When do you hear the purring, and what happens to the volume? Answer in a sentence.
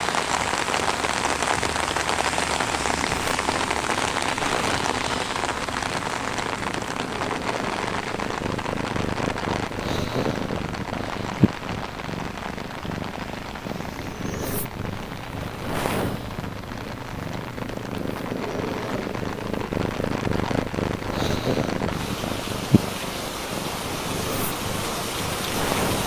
You can hear the purring from 0.0 to 26.0 s, getting louder.